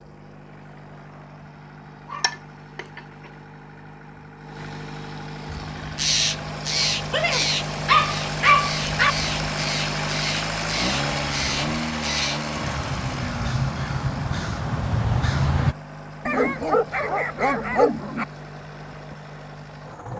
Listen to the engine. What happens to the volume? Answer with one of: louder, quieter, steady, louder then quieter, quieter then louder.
louder then quieter.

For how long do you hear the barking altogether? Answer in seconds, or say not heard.
5 s.